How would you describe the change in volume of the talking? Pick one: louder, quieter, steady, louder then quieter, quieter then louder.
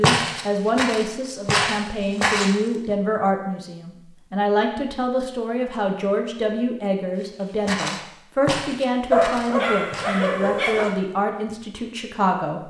steady.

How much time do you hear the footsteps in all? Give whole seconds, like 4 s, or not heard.
6 s.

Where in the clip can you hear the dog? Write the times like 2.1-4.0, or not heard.
9.1-10.9.